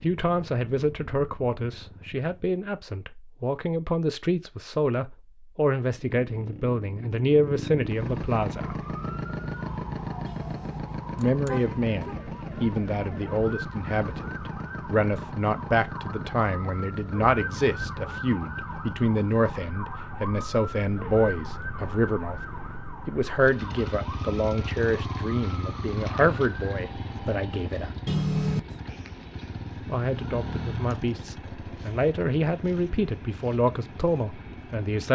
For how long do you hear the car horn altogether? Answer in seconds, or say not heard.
3 s.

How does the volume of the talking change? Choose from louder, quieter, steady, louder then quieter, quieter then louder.
steady.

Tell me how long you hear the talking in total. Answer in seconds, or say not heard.
30 s.